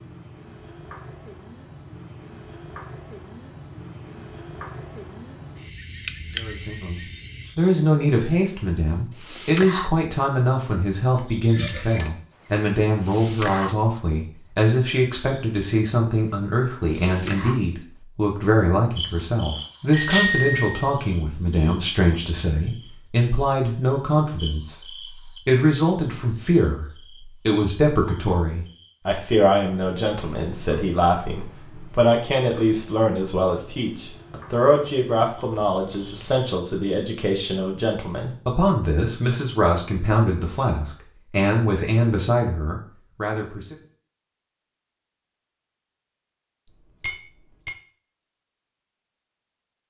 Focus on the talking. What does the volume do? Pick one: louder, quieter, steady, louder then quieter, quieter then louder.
steady.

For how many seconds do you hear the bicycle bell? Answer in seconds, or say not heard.
3 s.